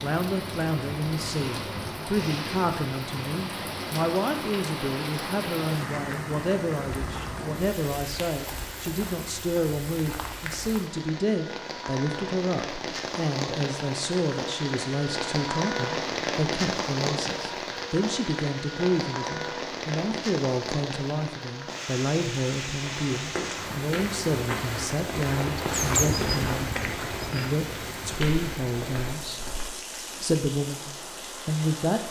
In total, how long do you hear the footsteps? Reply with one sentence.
You can hear the footsteps for 7 seconds altogether.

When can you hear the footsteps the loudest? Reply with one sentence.
The loudest moment of the footsteps is at 26 seconds.